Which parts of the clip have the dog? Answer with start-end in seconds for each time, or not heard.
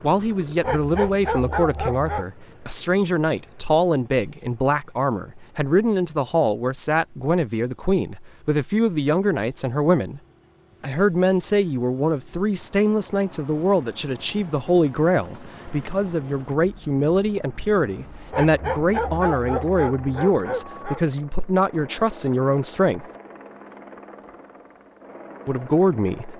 0.6-2.2, 18.3-21.0.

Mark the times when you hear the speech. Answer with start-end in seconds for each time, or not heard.
0.0-10.2, 10.8-23.1, 25.4-26.3.